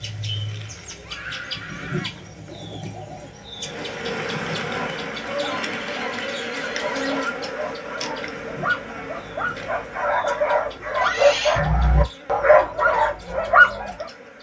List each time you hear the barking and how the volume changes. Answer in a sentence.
The barking can be heard from 4.7 to 14.1 s, getting louder.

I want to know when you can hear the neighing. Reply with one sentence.
The neighing can be heard from 0.9 to 2.2 s, from 5.5 to 7.2 s and from 11.0 to 11.6 s.